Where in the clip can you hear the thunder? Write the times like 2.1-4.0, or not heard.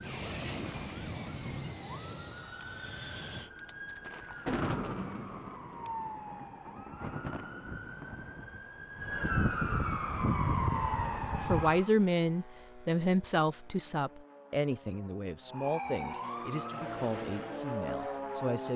4.0-8.6.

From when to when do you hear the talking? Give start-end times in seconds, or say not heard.
11.4-18.7.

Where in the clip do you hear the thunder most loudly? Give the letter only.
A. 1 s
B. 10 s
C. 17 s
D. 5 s
D.